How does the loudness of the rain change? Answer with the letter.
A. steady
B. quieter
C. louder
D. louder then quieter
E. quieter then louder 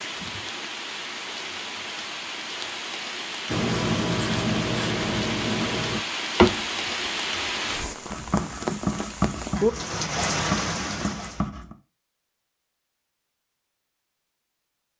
C.